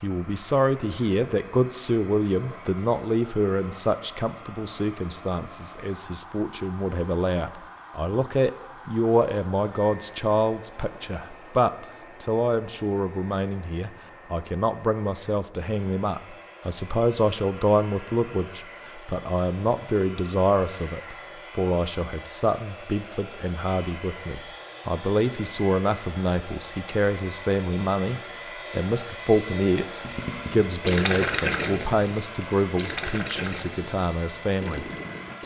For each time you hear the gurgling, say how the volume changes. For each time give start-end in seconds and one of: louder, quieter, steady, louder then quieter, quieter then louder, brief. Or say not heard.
30.0-35.4 quieter.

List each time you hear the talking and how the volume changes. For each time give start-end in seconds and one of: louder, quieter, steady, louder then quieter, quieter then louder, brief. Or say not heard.
0.0-35.4 steady.